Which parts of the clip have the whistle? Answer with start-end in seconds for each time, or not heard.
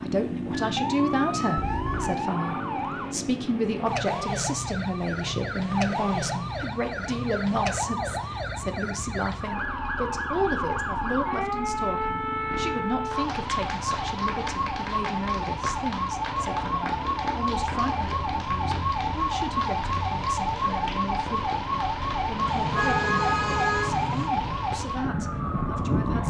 not heard.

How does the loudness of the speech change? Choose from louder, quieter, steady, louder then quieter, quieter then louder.
quieter.